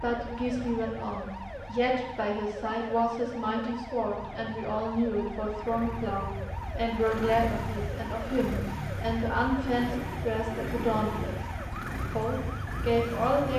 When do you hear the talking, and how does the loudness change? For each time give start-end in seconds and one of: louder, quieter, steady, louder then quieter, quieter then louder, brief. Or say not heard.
0.0-11.4 steady
12.1-13.5 brief.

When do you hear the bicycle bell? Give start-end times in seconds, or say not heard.
not heard.